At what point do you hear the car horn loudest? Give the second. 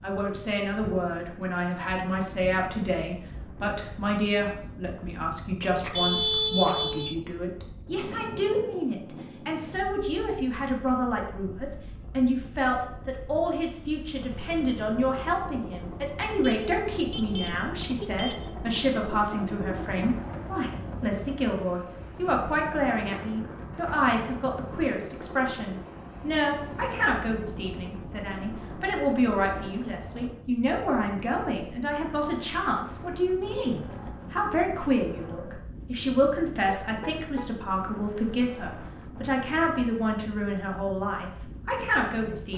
6 s.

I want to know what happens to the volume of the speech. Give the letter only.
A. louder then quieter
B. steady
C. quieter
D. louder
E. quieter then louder
B.